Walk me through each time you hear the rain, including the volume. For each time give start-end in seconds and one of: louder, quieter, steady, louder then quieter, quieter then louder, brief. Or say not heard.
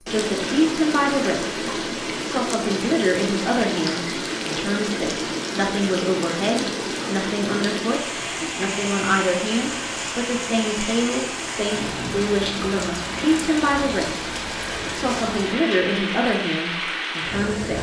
0.0-17.7 steady.